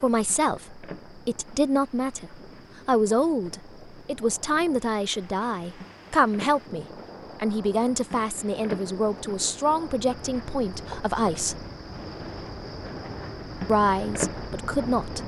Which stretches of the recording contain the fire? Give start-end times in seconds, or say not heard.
not heard.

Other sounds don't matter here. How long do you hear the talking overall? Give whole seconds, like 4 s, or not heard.
13 s.